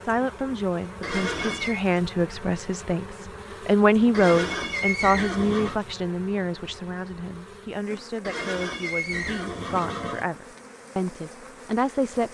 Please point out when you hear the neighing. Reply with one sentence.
You can hear the neighing from 1.0 to 1.9 s, from 4.1 to 5.8 s and from 8.2 to 10.2 s.